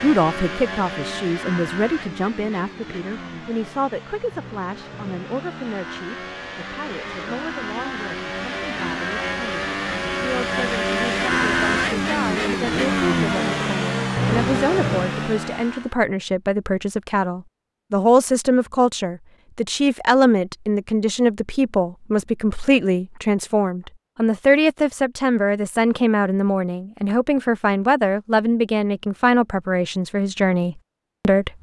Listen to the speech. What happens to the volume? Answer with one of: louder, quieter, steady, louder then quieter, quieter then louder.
quieter then louder.